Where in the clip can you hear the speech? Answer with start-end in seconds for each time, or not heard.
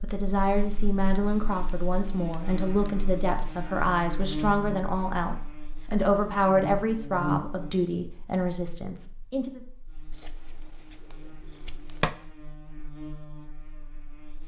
0.0-9.6.